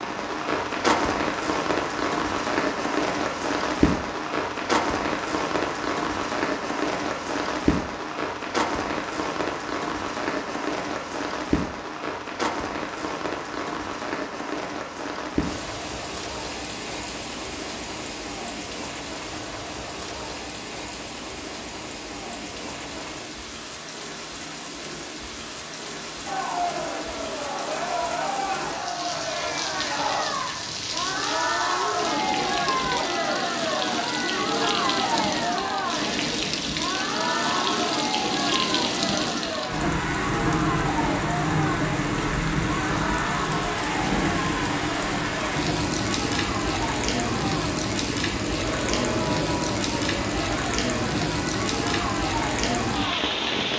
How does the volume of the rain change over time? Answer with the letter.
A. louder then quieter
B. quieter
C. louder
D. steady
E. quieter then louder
E.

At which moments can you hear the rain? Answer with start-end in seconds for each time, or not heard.
0.0-53.7.